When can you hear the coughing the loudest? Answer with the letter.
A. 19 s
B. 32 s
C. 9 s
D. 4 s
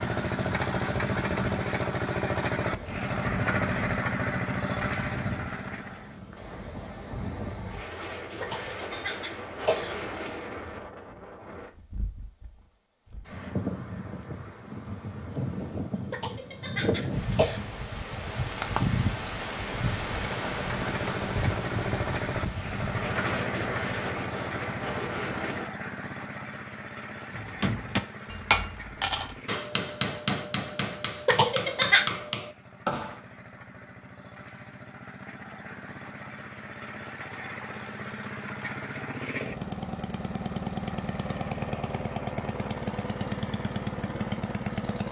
B.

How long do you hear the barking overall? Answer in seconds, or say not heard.
not heard.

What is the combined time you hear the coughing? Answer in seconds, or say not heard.
4 s.